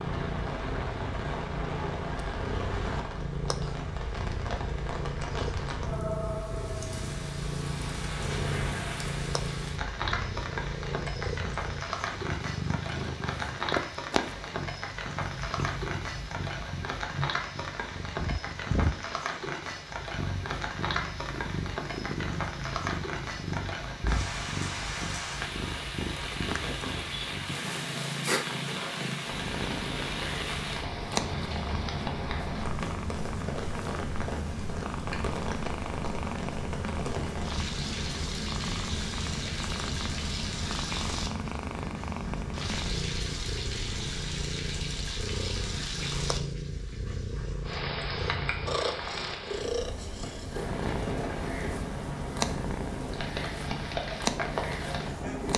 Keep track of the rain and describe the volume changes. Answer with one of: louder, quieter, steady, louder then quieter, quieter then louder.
steady.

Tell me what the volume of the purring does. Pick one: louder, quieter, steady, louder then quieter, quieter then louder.
steady.